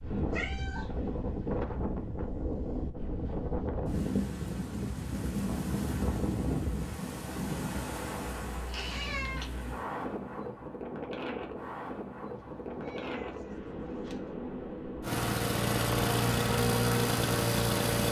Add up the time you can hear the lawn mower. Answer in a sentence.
You can hear the lawn mower for 3 seconds altogether.